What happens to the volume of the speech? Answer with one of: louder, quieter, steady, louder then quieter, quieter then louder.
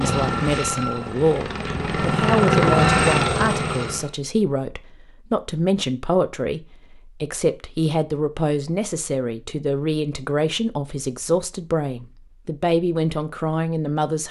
steady.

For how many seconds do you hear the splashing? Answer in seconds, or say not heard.
not heard.